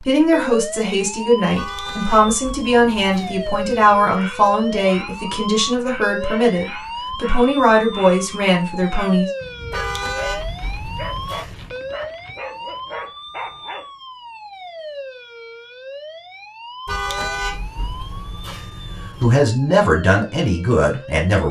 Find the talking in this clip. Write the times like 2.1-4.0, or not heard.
0.0-9.3, 19.2-21.4.